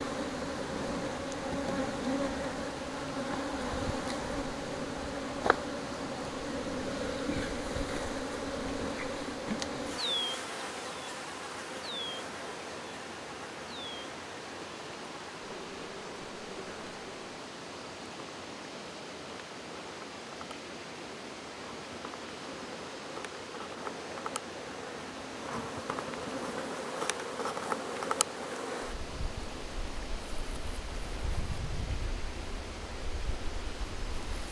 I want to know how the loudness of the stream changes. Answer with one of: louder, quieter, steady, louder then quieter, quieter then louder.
steady.